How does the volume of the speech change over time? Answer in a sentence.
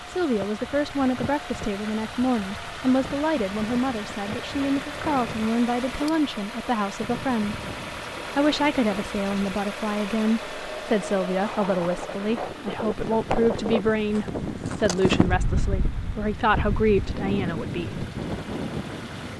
The volume of the speech stays about the same.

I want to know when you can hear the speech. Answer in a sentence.
The speech can be heard from 0.1 to 7.6 s and from 8.3 to 18.1 s.